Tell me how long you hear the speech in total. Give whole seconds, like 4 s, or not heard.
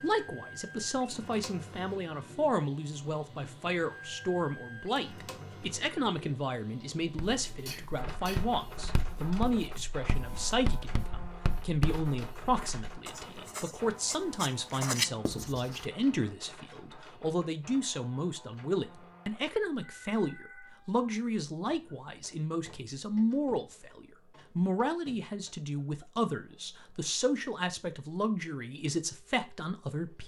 30 s.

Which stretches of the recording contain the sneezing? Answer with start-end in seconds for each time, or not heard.
7.7-8.4.